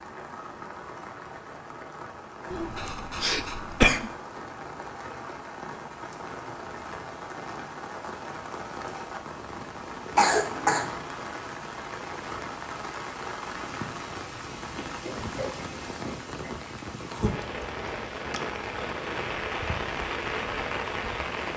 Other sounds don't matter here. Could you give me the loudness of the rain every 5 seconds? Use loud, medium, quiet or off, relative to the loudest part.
medium, medium, medium, loud, loud.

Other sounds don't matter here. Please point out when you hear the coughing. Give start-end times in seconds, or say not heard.
2.5-4.1, 10.2-10.9, 14.8-16.6.